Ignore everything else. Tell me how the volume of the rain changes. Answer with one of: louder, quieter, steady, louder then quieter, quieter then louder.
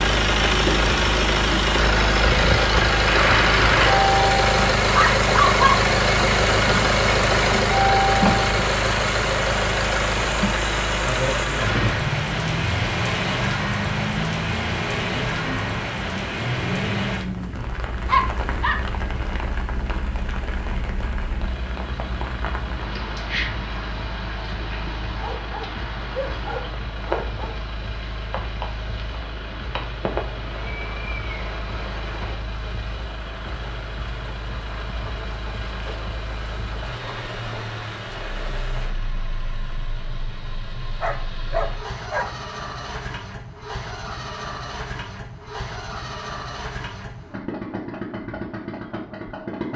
quieter.